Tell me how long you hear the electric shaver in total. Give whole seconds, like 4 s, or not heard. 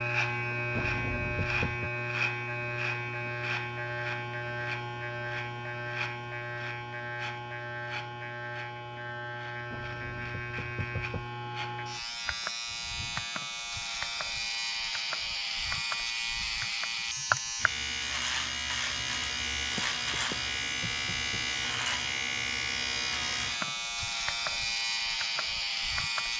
26 s.